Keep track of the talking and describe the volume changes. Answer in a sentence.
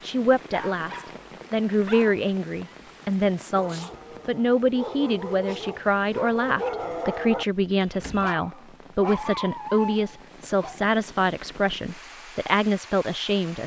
The volume of the talking stays about the same.